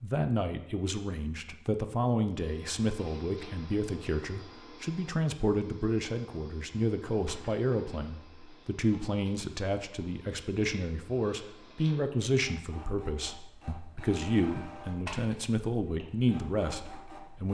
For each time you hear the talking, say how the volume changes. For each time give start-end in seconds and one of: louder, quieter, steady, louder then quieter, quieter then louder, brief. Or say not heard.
0.0-17.4 steady.